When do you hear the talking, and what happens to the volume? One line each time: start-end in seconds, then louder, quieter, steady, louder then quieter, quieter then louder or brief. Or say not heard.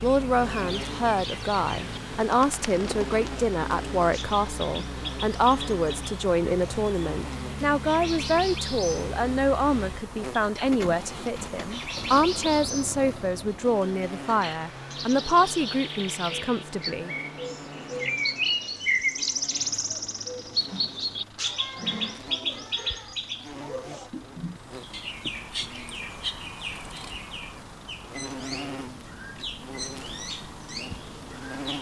0.0-17.1 steady.